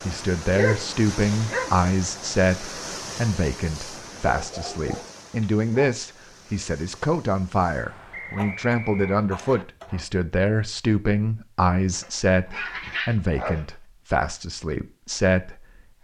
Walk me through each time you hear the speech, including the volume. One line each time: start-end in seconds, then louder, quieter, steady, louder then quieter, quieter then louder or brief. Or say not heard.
0.0-15.9 steady.